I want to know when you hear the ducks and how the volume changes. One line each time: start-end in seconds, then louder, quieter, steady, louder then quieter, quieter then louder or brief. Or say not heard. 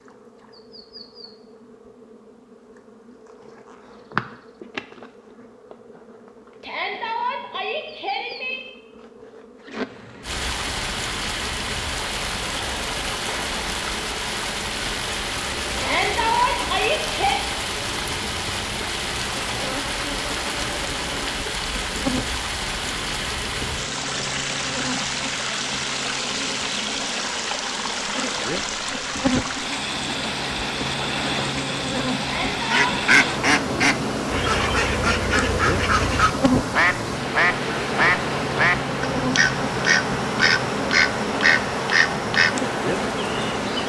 32.6-42.6 steady.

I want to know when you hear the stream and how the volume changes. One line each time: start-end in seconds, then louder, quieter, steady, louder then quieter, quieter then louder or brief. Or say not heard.
10.2-43.8 steady.